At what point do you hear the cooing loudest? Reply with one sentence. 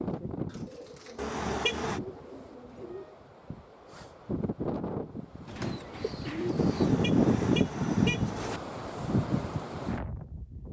The volume of the cooing peaks at 6 seconds.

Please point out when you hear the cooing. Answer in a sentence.
The cooing can be heard from 0.5 to 3.3 s and from 5.5 to 7.0 s.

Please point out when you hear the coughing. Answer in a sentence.
You can't hear the coughing here.